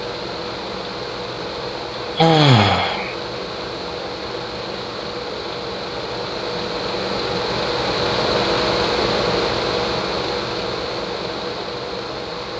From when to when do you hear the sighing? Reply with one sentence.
You can hear the sighing from 2.1 to 3.1 s.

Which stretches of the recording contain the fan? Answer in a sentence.
You can hear the fan from 0.0 to 12.5 s.